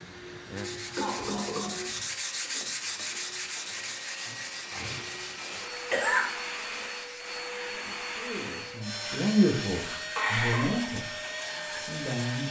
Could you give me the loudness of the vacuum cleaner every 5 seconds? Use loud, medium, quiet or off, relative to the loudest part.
medium, loud, loud.